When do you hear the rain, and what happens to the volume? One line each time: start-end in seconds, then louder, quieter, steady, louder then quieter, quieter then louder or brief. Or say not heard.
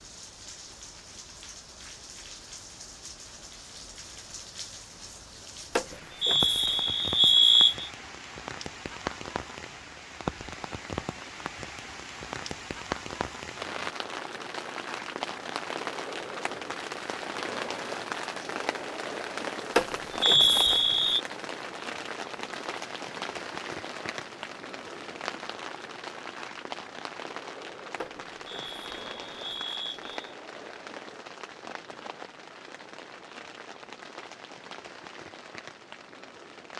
0.0-36.7 louder then quieter.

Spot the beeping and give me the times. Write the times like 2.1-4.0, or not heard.
5.8-7.9, 19.8-21.2, 28.0-30.1.